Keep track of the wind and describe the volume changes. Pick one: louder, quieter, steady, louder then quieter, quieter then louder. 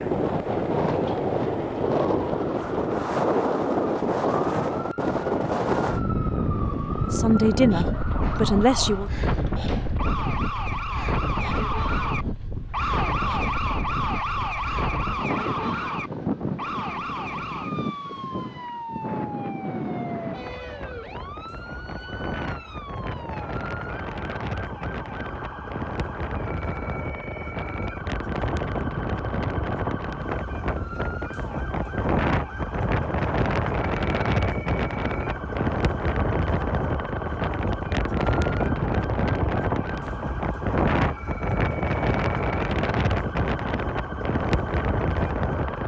quieter then louder.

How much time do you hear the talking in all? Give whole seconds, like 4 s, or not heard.
2 s.